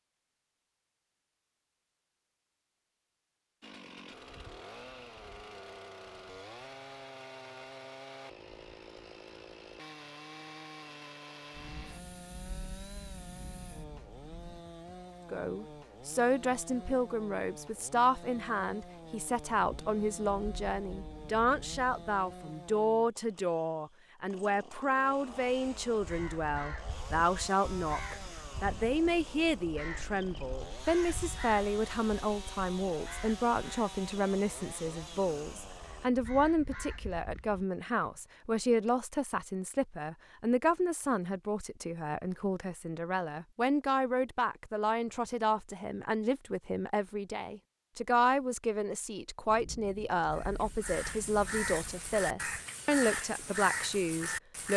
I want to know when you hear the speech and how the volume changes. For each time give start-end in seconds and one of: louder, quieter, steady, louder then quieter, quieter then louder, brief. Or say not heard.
15.3-54.7 steady.